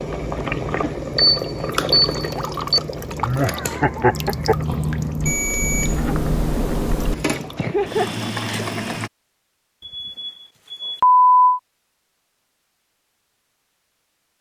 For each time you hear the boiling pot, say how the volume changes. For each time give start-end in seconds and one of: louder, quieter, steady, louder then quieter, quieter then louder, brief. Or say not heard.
0.0-9.1 quieter then louder.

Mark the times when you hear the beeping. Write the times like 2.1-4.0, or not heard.
1.1-2.8, 5.2-7.2, 9.8-11.6.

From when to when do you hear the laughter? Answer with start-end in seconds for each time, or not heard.
3.2-4.5, 7.5-8.7.